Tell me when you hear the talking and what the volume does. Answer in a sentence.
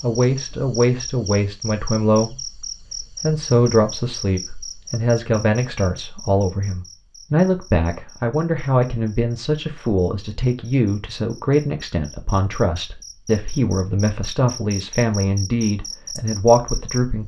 You can hear the talking from 0.0 to 17.2 s, at a steady volume.